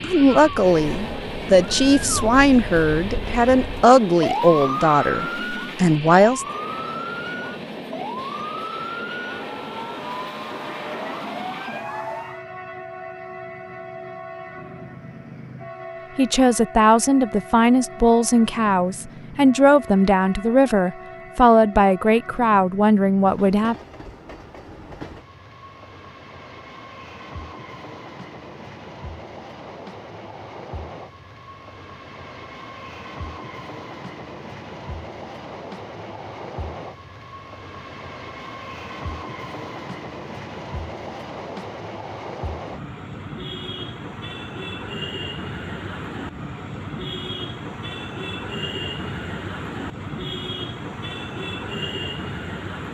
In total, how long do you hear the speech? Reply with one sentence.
The speech can be heard for 14 seconds in total.